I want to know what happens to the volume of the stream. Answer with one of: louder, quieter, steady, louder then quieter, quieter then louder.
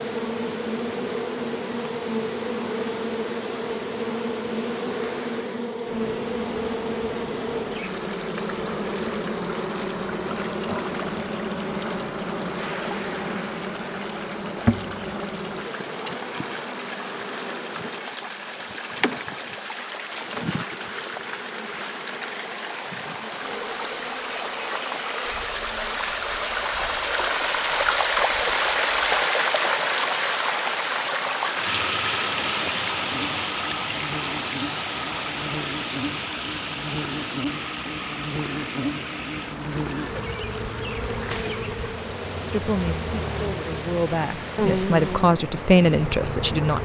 louder then quieter.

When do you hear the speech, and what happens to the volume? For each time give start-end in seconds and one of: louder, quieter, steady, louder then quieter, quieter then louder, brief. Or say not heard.
42.5-46.8 louder.